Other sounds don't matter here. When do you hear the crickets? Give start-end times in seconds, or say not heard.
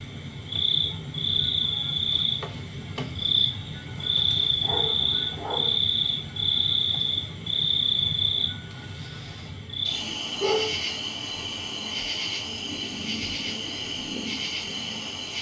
0.0-15.3.